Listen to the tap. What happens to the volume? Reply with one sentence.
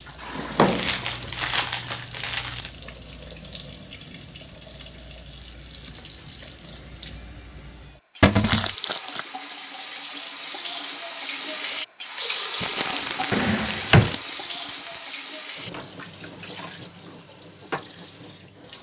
The loudness of the tap goes up, then down.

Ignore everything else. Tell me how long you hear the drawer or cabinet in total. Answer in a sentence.
The drawer or cabinet can be heard for 2 seconds in total.